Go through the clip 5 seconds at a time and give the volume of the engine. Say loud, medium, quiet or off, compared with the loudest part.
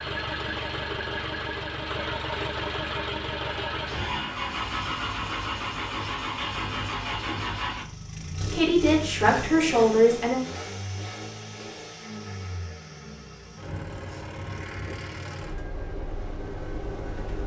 loud, loud, medium, medium.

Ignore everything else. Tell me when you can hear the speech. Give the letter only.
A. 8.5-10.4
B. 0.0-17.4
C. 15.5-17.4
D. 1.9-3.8
A.